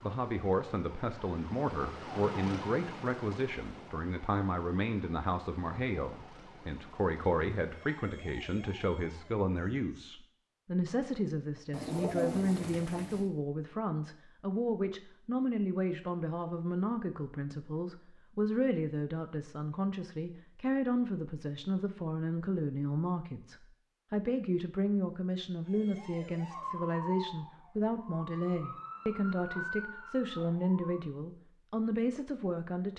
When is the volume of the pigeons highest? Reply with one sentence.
The loudest moment of the pigeons is at 12 seconds.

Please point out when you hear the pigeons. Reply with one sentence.
You can hear the pigeons from 11.7 to 13.3 s.